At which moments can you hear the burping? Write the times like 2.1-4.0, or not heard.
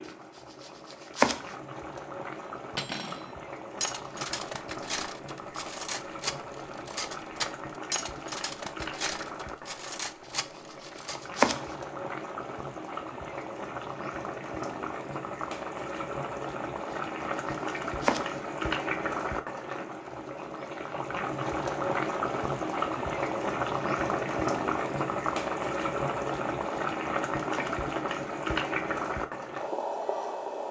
not heard.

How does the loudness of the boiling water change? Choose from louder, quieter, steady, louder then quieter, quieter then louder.
louder.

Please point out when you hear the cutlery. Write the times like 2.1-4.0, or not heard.
2.8-11.2.